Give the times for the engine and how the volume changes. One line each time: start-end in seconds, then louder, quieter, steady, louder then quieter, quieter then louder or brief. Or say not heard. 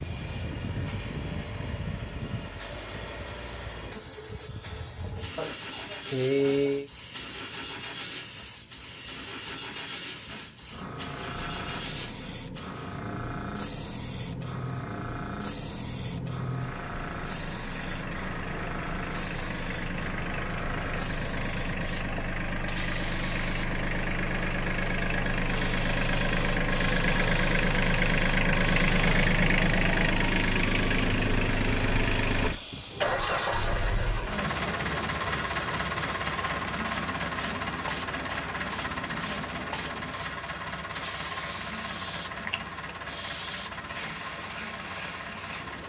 0.0-45.8 louder then quieter.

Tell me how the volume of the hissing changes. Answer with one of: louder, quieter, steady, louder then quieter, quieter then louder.
steady.